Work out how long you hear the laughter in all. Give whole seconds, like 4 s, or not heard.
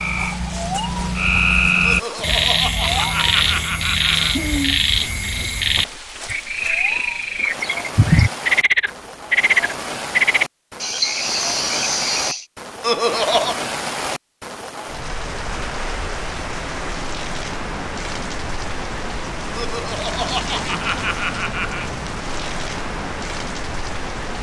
6 s.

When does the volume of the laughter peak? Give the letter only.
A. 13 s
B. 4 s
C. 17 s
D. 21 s
A.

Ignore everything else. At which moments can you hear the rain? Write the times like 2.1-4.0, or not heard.
0.0-24.3.